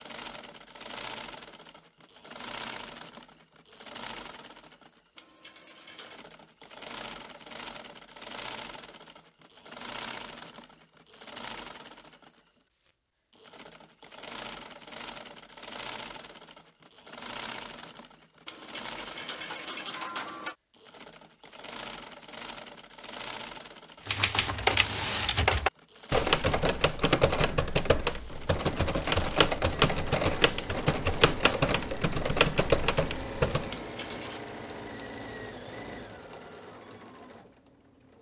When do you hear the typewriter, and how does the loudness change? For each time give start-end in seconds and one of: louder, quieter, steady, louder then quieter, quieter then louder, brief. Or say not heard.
24.1-33.7 steady.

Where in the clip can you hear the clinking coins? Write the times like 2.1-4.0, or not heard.
5.2-6.2, 18.4-20.6, 33.7-34.4.